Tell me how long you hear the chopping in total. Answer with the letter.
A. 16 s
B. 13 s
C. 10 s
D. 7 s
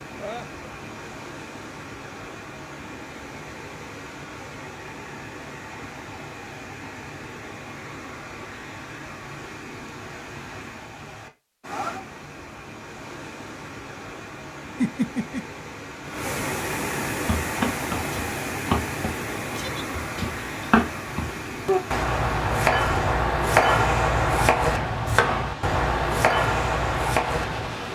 C.